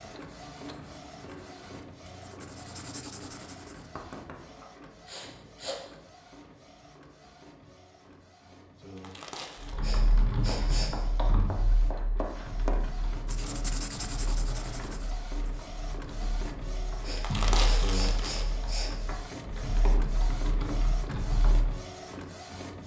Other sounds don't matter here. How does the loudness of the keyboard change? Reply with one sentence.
The loudness of the keyboard goes down, then up.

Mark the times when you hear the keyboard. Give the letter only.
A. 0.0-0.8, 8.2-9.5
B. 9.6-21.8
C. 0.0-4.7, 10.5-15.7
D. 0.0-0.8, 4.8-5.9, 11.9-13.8
B.